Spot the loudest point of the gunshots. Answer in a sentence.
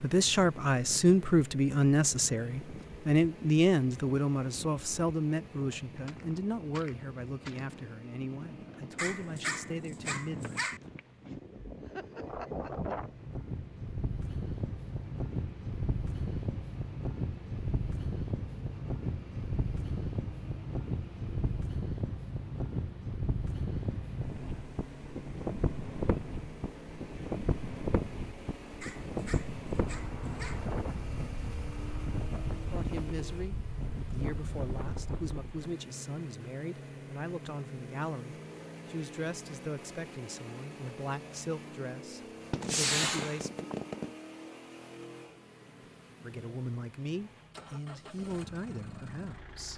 The loudest moment of the gunshots is at 43 seconds.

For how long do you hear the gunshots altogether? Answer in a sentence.
You can hear the gunshots for 3 seconds altogether.